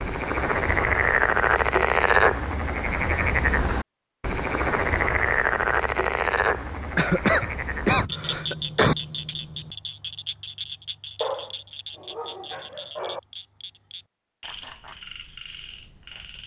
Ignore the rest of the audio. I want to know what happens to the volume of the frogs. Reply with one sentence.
The volume of the frogs goes down.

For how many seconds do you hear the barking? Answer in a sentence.
The barking can be heard for 2 seconds in total.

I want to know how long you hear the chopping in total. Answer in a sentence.
You can't hear the chopping here.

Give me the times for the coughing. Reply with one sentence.
The coughing can be heard from 7.0 to 8.9 s.